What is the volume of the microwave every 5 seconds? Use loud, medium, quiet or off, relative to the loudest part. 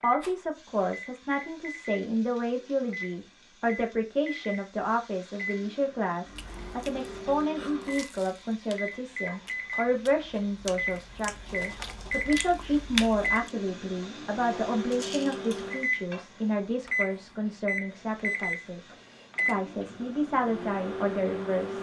medium, medium, loud, loud, loud.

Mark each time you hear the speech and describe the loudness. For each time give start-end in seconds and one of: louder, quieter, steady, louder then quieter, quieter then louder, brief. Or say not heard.
0.0-21.7 steady.